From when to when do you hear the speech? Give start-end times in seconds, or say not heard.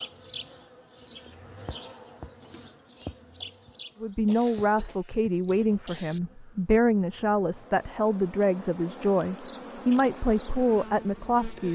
4.0-11.7.